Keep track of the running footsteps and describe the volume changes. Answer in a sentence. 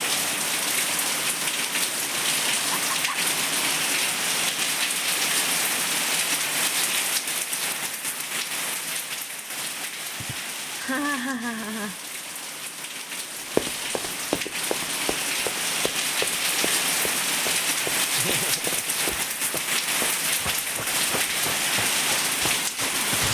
The volume of the running footsteps goes down.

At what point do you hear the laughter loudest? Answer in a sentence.
The loudest moment of the laughter is at 11 seconds.